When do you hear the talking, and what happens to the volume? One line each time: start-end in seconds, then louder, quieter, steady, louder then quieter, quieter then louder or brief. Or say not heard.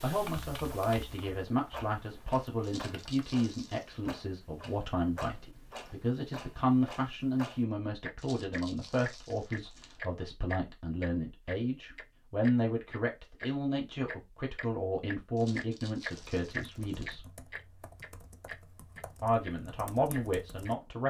0.0-17.2 steady
19.2-21.0 brief.